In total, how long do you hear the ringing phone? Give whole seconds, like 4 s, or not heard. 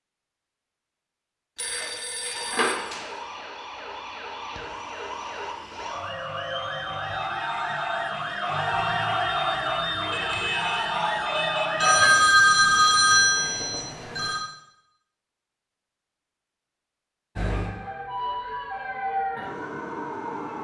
4 s.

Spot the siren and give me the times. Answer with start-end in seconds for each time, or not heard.
2.3-12.1, 17.4-20.5.